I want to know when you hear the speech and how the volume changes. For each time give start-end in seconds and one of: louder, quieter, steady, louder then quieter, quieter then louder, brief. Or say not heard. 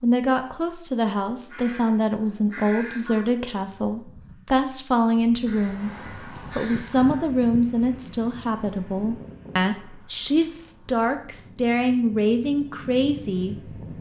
0.0-13.8 steady.